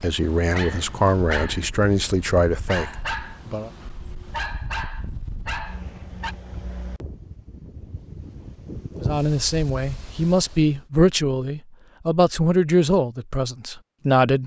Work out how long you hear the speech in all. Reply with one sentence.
You can hear the speech for 9 seconds altogether.